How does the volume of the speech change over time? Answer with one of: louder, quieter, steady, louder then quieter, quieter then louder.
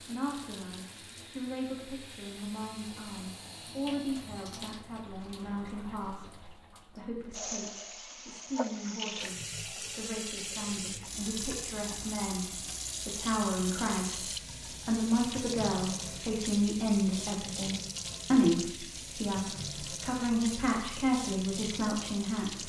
louder.